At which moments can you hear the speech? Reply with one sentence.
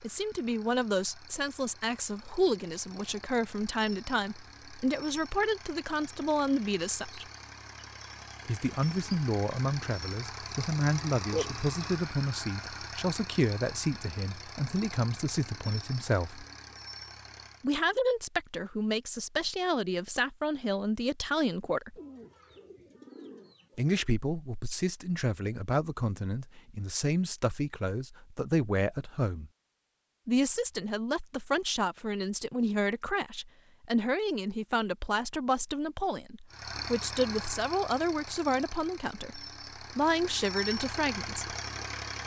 You can hear the speech from 0.0 to 7.2 s, from 8.4 to 16.4 s, from 17.6 to 21.9 s, from 23.8 to 29.5 s and from 30.2 to 41.5 s.